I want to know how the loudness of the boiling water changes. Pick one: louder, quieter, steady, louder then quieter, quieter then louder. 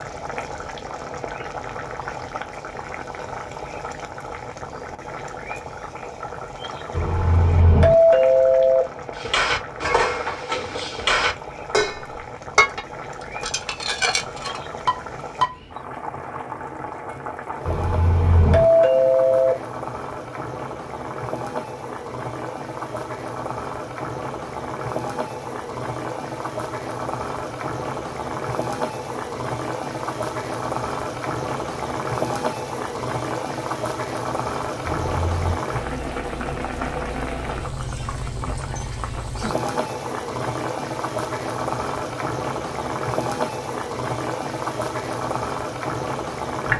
louder.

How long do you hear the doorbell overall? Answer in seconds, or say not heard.
4 s.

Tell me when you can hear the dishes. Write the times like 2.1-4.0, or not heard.
9.2-15.6.